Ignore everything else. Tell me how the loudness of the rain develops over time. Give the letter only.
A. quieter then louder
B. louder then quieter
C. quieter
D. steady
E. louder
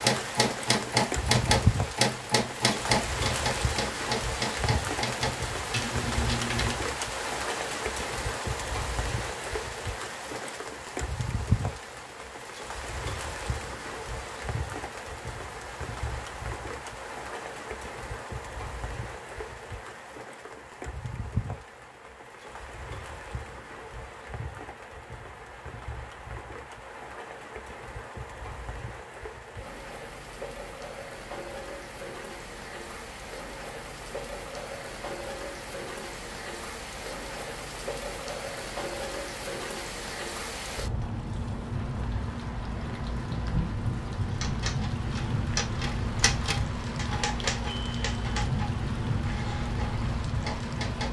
A.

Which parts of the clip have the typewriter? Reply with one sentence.
You can hear the typewriter from 0.0 to 6.8 s and from 44.2 to 51.0 s.